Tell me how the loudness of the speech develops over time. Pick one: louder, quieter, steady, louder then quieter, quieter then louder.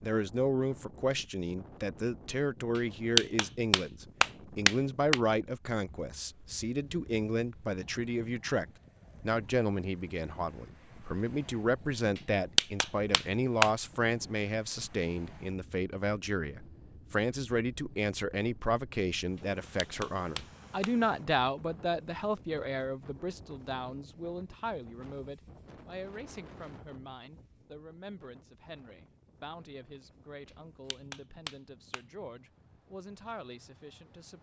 quieter.